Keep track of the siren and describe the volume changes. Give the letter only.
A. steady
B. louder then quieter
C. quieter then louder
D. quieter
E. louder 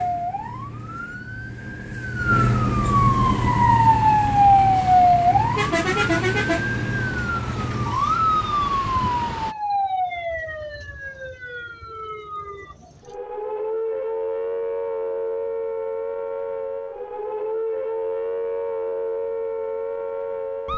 D.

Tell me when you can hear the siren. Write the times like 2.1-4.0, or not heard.
0.0-20.7.